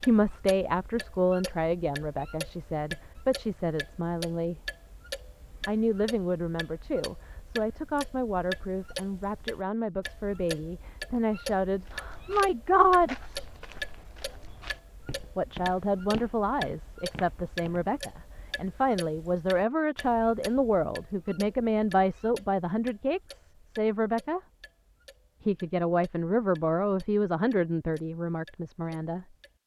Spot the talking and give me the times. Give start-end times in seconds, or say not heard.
0.0-4.5, 5.7-13.2, 15.3-24.4, 25.4-29.2.